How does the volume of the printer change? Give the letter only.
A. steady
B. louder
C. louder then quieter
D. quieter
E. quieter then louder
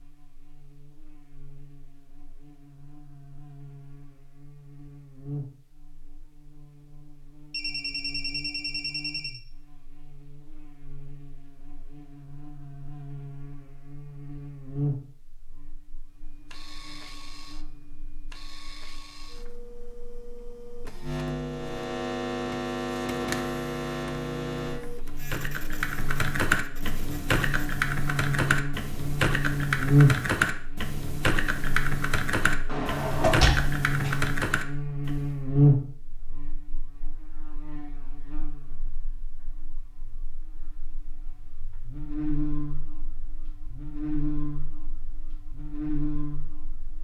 C.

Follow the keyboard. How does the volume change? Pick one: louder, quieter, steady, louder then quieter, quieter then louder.
steady.